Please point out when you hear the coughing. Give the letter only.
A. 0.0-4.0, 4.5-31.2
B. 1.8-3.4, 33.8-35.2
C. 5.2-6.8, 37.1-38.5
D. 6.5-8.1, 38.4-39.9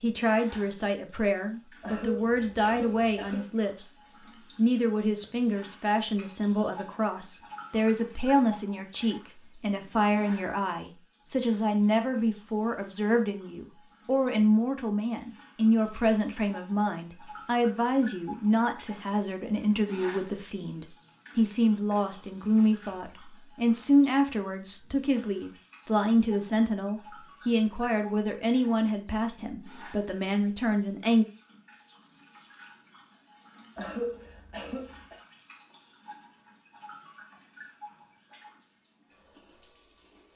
B.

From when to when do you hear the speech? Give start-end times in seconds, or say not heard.
0.0-4.0, 4.5-31.2.